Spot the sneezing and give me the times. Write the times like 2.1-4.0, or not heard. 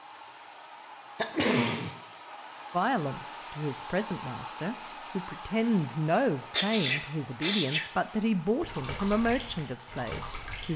1.1-1.9, 6.5-7.8.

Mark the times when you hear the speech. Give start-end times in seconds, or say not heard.
2.7-10.7.